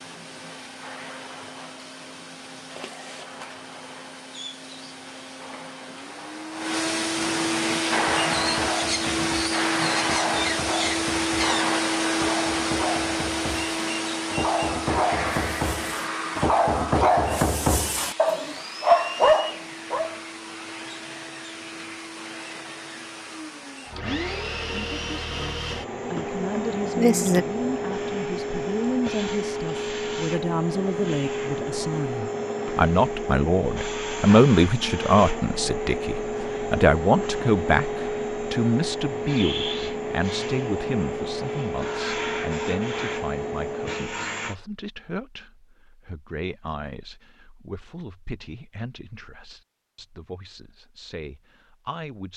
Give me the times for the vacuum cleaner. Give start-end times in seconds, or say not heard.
0.0-44.5.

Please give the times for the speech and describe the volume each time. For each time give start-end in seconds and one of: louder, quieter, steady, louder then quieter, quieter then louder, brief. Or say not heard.
24.8-52.3 louder then quieter.